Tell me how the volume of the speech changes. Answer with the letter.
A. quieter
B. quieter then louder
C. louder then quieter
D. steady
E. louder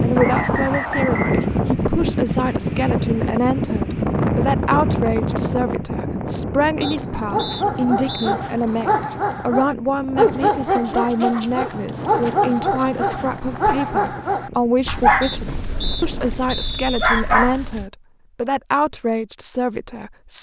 D.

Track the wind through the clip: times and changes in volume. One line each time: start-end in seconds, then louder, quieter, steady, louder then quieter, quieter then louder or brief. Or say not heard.
0.0-16.6 quieter.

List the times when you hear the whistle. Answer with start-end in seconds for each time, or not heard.
0.1-1.5, 6.8-8.3, 15.2-17.2.